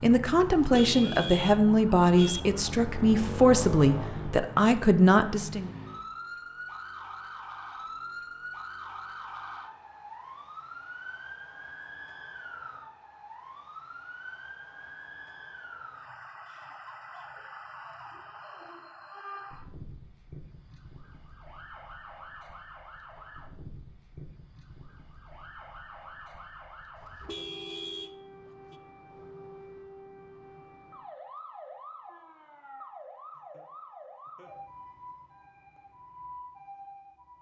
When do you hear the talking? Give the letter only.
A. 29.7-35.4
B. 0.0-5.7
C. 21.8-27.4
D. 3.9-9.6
B.